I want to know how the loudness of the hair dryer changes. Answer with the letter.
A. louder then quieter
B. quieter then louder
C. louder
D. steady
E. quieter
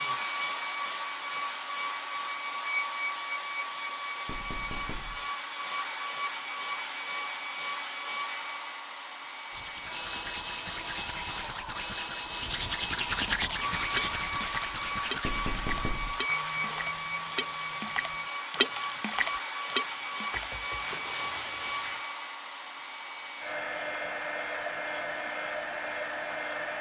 D.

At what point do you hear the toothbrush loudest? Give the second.
13 s.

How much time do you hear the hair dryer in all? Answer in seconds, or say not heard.
27 s.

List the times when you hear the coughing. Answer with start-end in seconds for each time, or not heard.
not heard.